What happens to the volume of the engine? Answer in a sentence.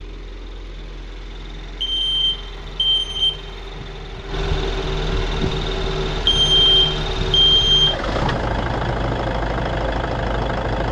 The volume of the engine goes up.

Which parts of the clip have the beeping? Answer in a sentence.
You can hear the beeping from 1.8 to 3.4 s and from 6.2 to 8.0 s.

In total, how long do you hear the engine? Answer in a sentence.
You can hear the engine for 11 seconds altogether.